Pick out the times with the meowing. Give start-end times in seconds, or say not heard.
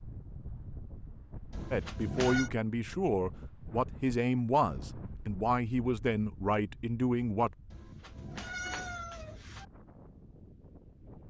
1.5-2.5, 7.7-9.7.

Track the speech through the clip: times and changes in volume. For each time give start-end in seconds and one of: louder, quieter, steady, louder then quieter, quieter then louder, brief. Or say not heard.
1.7-7.5 steady.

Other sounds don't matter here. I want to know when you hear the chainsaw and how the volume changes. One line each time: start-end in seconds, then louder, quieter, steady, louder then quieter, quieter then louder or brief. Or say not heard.
not heard.